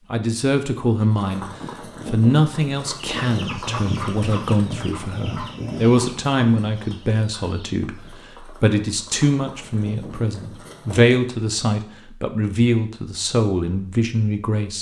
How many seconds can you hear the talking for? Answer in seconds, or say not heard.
14 s.